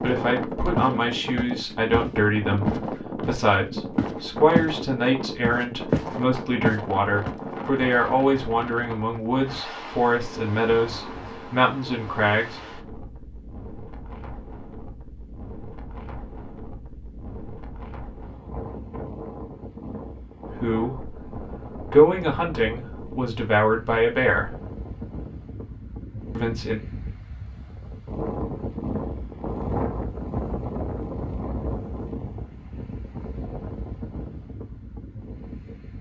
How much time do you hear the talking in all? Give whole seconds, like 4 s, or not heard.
17 s.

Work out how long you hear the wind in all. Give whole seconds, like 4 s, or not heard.
36 s.